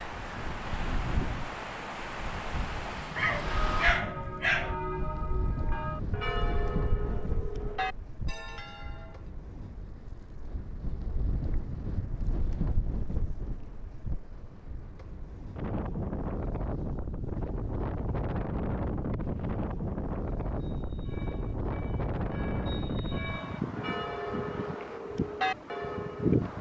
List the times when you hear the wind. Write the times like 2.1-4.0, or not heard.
0.0-26.5.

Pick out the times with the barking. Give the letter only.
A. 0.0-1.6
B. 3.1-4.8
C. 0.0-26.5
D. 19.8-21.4
B.